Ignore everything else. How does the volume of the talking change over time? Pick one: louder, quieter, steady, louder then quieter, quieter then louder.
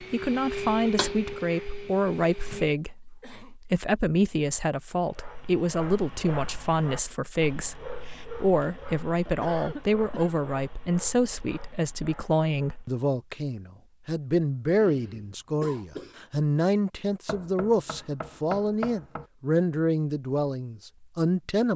steady.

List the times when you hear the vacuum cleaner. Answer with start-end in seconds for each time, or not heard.
0.0-2.8.